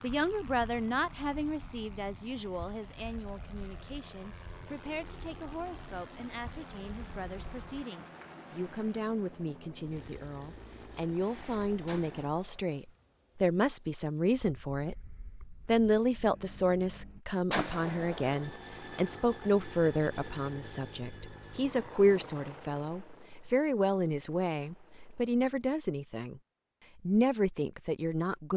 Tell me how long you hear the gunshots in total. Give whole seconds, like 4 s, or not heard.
2 s.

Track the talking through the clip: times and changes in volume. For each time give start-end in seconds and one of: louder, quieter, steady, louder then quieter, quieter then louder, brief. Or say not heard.
0.0-26.4 louder
27.0-28.5 brief.